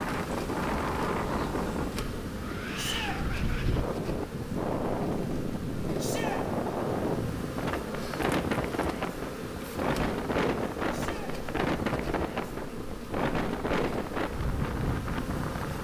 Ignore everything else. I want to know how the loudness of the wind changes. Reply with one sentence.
The volume of the wind stays about the same.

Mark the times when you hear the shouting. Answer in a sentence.
The shouting can be heard from 2.8 to 3.2 s, from 6.0 to 6.4 s and from 10.9 to 11.3 s.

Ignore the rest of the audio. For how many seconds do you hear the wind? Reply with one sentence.
The wind can be heard for 16 seconds in total.